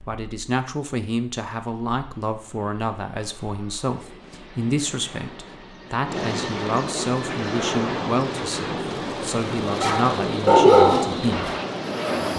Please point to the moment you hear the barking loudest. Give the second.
11 s.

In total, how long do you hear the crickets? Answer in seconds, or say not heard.
not heard.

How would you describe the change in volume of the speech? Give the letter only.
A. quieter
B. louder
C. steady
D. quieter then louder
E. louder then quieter
C.